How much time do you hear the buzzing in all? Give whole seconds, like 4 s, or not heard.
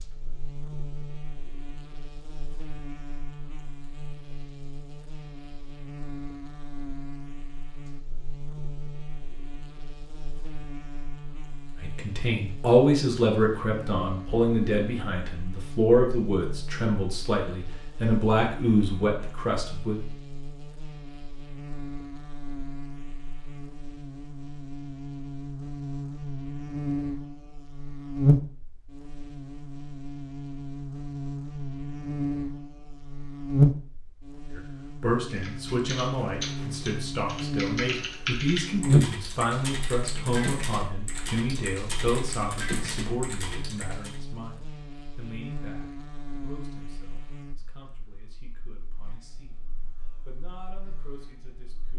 52 s.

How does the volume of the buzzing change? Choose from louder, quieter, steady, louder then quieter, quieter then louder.
louder then quieter.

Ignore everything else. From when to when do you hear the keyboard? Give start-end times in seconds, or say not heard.
35.2-44.2.